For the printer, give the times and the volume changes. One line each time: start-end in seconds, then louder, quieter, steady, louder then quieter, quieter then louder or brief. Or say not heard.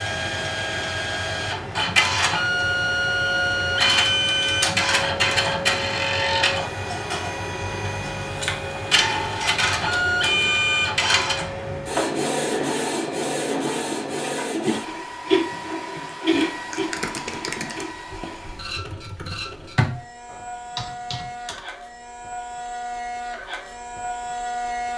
0.0-24.9 quieter.